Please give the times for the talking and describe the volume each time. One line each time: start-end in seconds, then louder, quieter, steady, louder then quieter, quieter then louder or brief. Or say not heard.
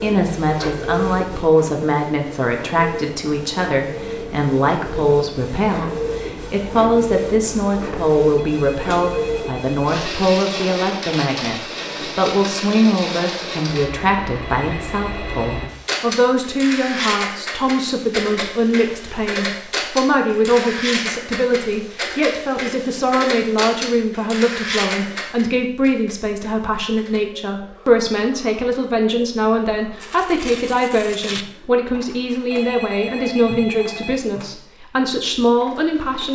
0.0-36.3 steady.